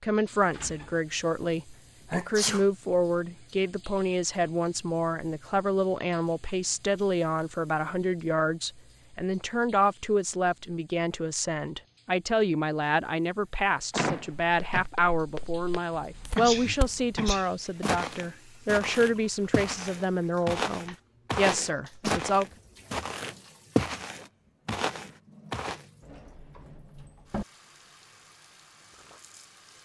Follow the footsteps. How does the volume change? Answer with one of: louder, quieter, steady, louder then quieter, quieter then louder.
louder.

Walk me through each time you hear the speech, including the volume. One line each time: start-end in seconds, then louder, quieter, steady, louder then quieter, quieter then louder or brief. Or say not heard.
0.0-22.4 steady.